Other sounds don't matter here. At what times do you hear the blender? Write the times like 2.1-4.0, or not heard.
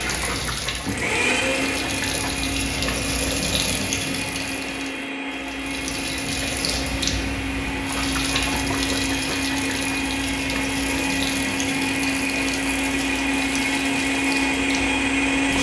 0.0-15.5.